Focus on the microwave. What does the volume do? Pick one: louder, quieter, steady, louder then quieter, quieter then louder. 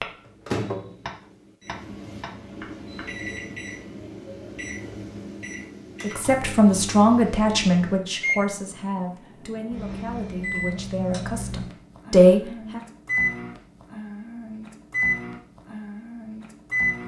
louder.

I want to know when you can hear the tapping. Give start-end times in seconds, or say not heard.
0.0-3.0.